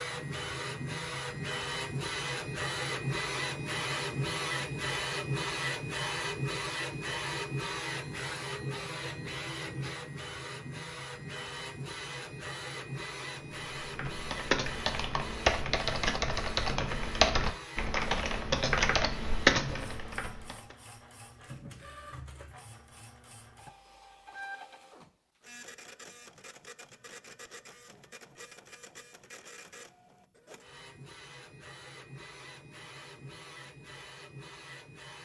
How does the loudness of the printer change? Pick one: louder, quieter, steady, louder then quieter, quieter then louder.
quieter.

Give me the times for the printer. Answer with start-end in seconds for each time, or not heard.
0.0-35.1.